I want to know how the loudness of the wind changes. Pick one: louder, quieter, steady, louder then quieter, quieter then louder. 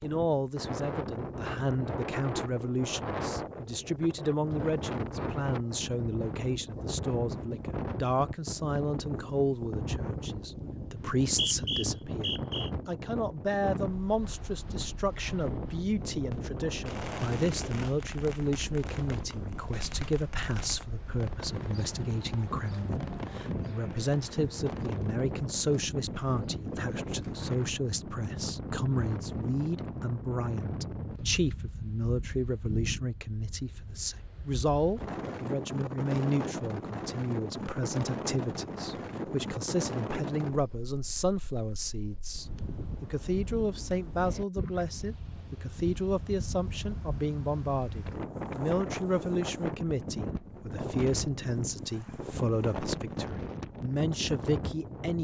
steady.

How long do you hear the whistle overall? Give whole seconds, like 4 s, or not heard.
2 s.